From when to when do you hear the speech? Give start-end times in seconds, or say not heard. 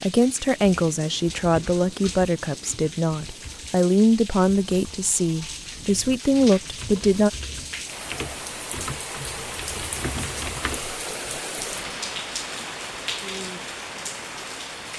0.0-7.3.